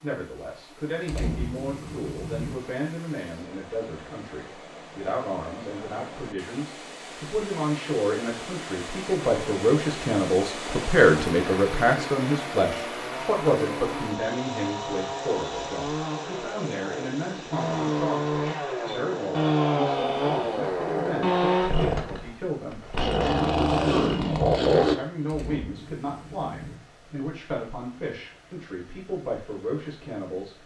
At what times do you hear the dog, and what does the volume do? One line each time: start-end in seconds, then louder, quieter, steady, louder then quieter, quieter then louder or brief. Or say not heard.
not heard.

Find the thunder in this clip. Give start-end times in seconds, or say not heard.
1.1-2.5, 25.2-26.8.